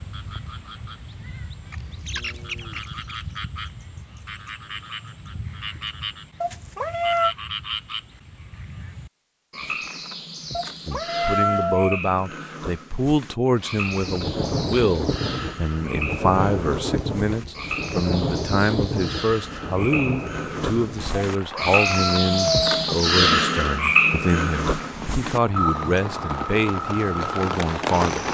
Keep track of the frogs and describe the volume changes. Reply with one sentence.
The loudness of the frogs goes up.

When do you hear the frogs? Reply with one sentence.
You can hear the frogs from 0.0 to 28.2 s.